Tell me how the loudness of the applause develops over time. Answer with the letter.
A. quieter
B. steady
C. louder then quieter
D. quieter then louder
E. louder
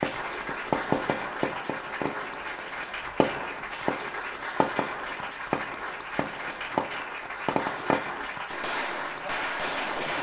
B.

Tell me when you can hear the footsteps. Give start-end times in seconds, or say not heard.
not heard.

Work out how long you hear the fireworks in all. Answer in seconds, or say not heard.
10 s.